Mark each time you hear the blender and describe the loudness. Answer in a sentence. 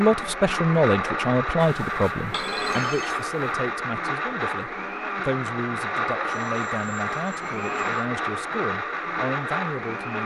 The blender can be heard from 0.0 to 10.2 s, at a steady volume.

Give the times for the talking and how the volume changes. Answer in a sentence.
You can hear the talking from 0.0 to 10.2 s, getting quieter.